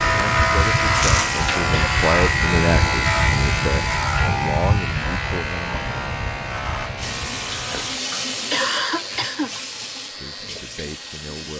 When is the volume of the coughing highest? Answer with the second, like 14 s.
9 s.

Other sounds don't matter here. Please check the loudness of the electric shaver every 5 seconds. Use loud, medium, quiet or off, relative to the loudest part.
loud, medium, quiet.